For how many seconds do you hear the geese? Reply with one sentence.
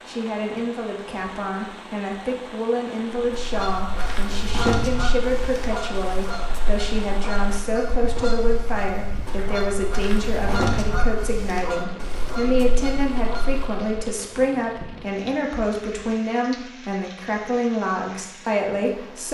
You can hear the geese for 11 seconds altogether.